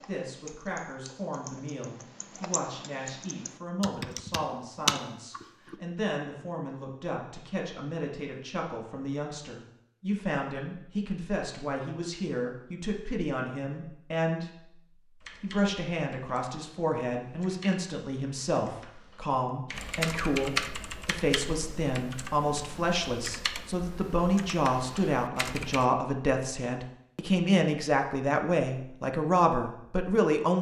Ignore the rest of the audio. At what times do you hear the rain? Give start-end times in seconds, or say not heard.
not heard.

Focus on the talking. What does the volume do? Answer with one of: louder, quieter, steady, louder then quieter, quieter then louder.
louder.